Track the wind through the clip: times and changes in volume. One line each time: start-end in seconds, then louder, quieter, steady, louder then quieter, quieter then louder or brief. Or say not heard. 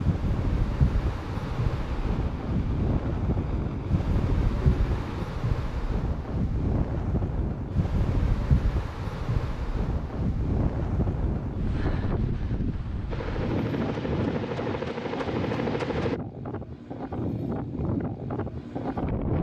0.0-19.3 steady.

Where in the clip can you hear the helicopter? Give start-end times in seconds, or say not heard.
0.0-5.2, 13.1-16.2.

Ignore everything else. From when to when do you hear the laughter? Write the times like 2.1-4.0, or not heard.
not heard.